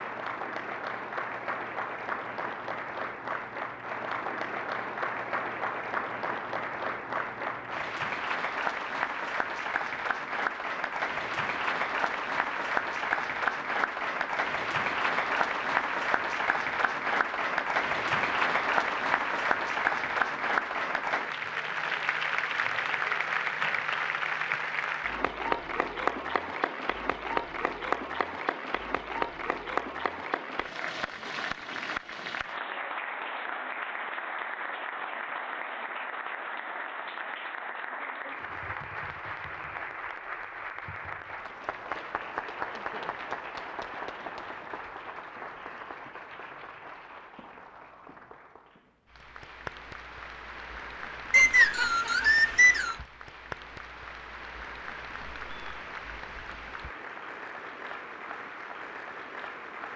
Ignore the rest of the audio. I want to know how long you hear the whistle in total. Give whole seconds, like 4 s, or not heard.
2 s.